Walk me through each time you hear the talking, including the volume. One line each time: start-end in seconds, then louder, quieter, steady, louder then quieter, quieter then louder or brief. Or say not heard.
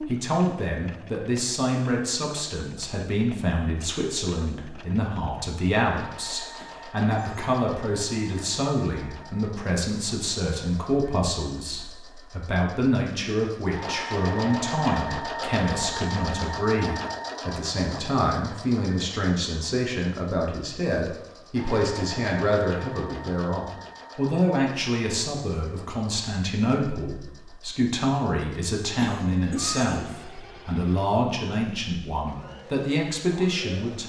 0.0-34.0 steady.